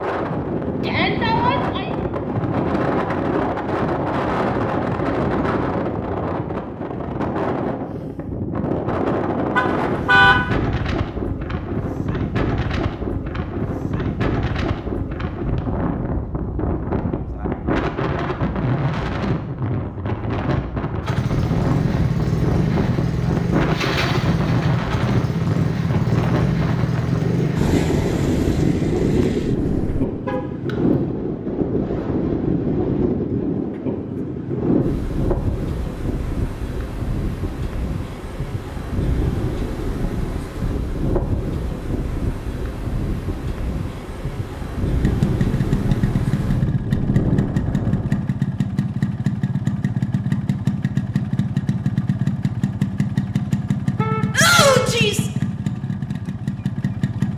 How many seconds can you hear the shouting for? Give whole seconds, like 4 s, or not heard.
2 s.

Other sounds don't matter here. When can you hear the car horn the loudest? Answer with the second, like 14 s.
10 s.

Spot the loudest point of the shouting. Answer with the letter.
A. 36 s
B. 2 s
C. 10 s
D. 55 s
D.